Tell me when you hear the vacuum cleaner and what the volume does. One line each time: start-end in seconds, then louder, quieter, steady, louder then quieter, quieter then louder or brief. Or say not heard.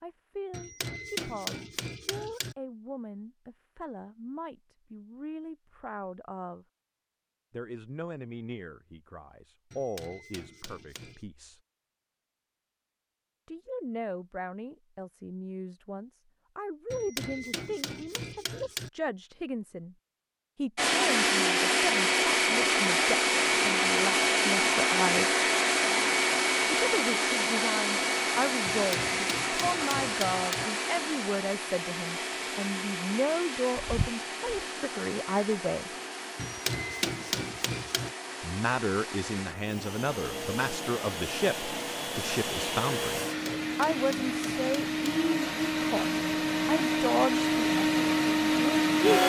20.8-49.2 quieter then louder.